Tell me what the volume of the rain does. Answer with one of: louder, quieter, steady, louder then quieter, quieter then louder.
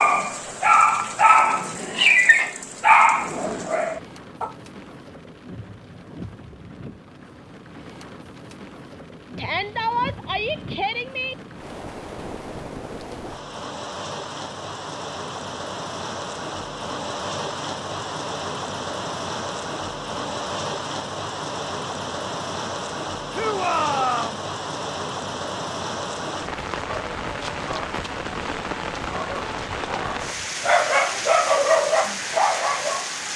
louder.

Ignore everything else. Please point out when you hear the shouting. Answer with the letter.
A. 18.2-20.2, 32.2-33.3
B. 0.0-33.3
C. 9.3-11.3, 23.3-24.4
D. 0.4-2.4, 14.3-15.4
C.